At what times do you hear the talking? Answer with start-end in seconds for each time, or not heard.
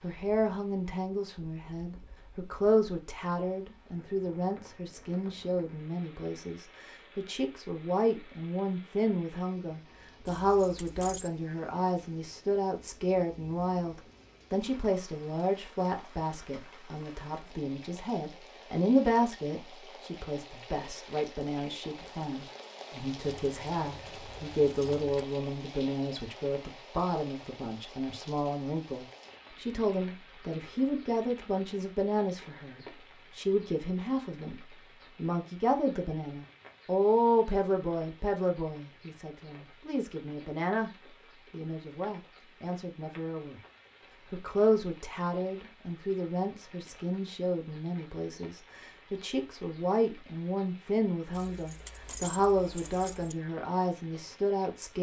0.0-40.9, 41.5-43.6, 44.3-54.9.